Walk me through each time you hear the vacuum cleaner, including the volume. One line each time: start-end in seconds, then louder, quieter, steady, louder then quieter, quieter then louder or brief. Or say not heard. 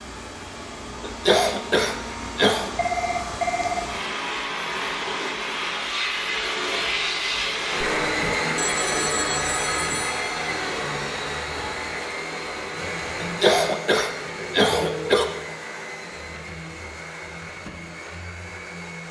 0.0-19.0 louder then quieter.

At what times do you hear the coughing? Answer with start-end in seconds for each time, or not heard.
1.0-2.7, 13.2-15.2.